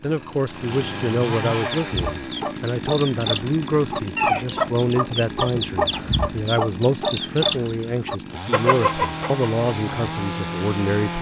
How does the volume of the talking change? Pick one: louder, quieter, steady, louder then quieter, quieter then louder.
steady.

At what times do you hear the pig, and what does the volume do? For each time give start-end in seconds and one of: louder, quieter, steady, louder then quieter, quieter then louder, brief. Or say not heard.
not heard.